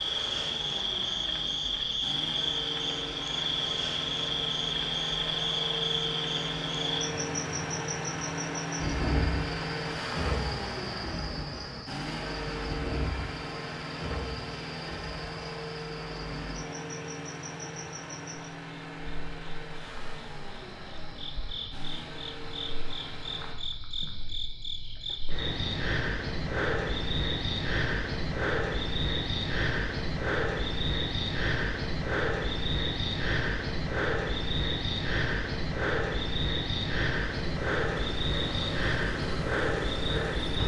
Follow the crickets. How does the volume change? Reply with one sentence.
The volume of the crickets goes down, then up.